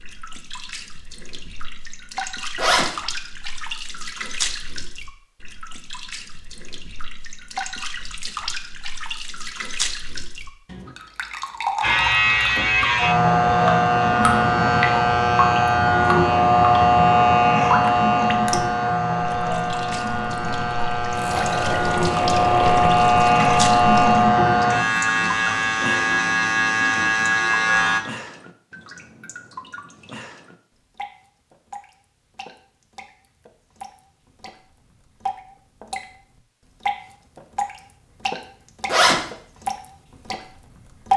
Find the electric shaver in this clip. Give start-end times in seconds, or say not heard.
11.8-28.0.